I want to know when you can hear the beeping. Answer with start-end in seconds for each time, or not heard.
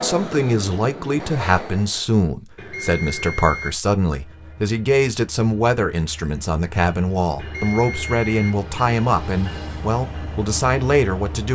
2.5-3.7, 7.3-8.5.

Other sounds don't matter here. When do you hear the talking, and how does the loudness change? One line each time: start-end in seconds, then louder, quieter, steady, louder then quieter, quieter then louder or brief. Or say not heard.
0.0-11.4 steady.